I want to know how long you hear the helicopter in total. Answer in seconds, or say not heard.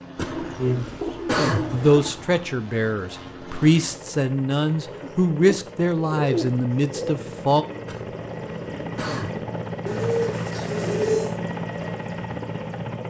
13 s.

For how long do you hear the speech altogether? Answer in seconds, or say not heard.
6 s.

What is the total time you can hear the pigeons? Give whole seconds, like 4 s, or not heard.
6 s.